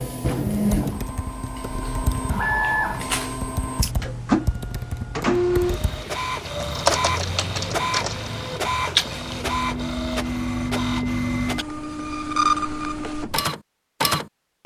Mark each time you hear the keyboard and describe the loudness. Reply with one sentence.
You can hear the keyboard from 0.5 to 8.3 s, getting louder.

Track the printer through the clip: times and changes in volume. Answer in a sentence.
You can hear the printer from 0.0 to 14.6 s, at a steady volume.